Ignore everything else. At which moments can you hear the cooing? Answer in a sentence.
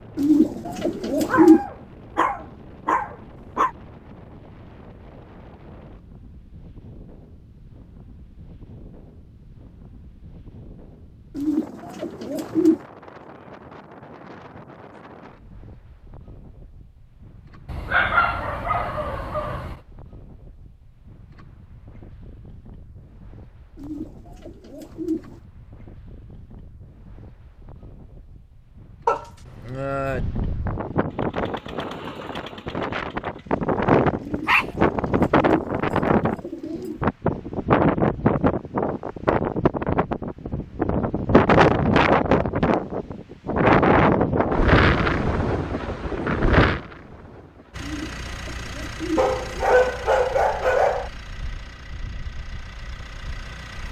The cooing can be heard from 0.1 to 1.6 s, from 11.3 to 12.8 s, from 23.8 to 25.4 s, from 34.2 to 37.0 s and from 47.8 to 49.9 s.